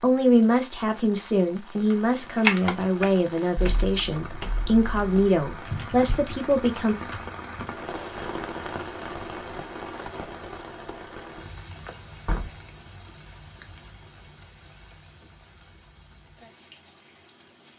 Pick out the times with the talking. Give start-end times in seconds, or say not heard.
0.0-7.0.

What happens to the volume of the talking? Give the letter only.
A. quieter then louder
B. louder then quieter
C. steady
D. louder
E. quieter
C.